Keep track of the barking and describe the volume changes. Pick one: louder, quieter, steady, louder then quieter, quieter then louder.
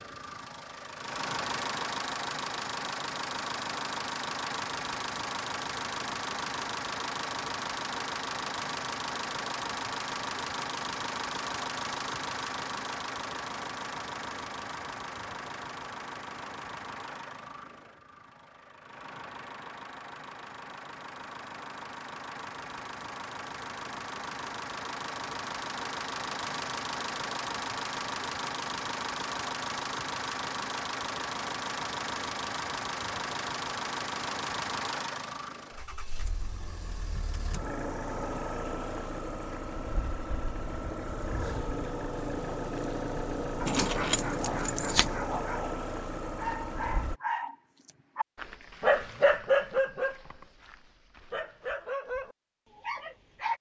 louder then quieter.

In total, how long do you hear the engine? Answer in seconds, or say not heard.
47 s.